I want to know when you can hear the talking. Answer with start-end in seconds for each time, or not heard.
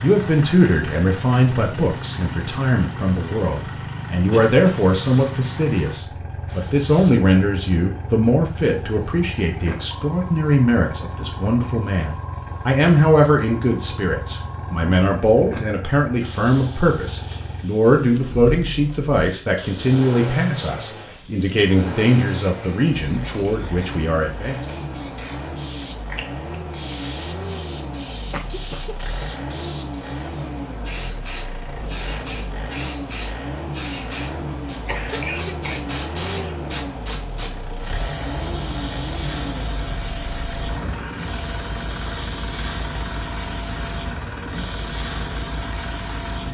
0.0-24.6.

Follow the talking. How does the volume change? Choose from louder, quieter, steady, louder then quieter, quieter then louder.
steady.